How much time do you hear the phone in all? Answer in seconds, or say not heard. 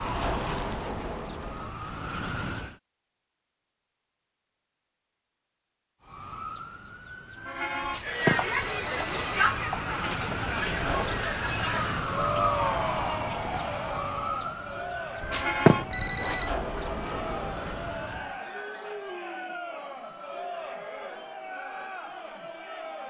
3 s.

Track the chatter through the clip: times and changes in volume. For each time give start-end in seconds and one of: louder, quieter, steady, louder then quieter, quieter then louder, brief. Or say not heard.
8.0-23.0 quieter.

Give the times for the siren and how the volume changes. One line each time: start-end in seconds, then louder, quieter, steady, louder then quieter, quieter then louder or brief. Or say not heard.
0.0-2.8 brief
6.0-18.4 louder then quieter.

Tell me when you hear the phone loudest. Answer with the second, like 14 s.
16 s.